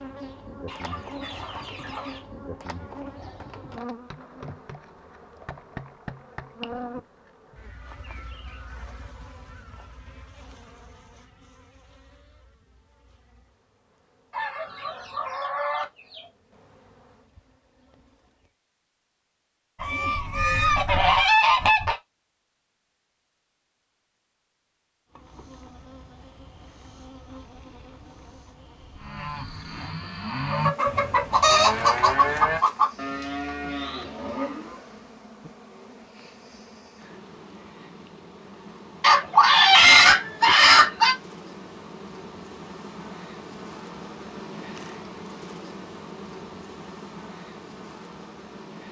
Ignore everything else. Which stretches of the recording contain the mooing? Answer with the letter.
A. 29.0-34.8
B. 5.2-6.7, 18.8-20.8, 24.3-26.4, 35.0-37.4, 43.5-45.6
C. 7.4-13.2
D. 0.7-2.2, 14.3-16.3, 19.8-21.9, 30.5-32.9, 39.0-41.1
A.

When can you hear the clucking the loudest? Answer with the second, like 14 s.
40 s.